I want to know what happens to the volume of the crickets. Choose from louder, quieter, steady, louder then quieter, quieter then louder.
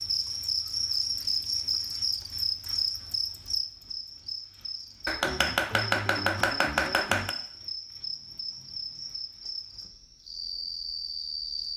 quieter.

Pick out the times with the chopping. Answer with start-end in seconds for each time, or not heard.
5.0-7.3.